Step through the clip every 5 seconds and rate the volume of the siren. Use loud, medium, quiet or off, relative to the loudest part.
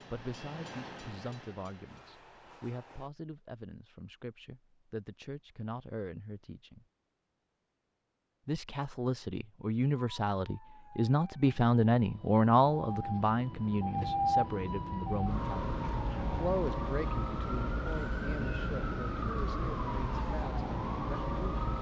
off, off, loud, loud, loud.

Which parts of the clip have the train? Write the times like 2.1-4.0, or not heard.
0.0-3.1.